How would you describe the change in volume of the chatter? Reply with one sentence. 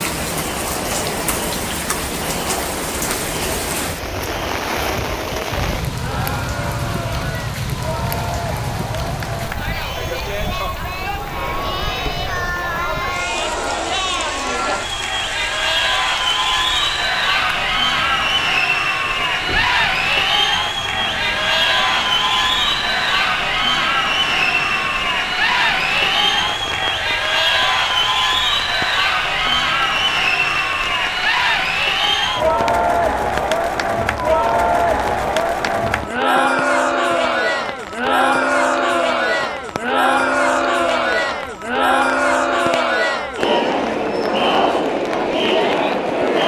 The volume of the chatter goes up.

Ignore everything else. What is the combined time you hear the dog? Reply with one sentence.
The dog can't be heard in this clip.